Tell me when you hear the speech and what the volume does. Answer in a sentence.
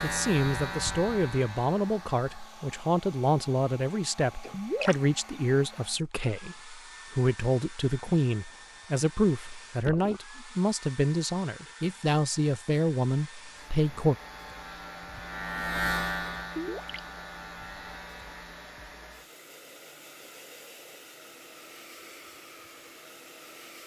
The speech can be heard from 0.0 to 14.2 s, at a steady volume.